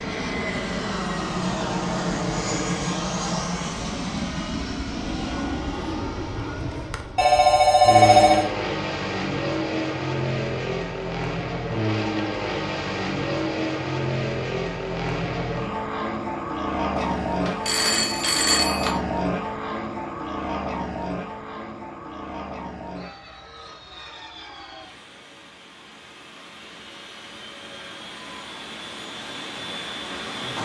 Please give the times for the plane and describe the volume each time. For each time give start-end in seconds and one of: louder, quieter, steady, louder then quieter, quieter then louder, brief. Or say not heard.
0.0-30.6 quieter.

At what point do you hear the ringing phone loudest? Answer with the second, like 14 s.
8 s.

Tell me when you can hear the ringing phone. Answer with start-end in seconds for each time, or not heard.
7.2-8.5, 17.0-18.9.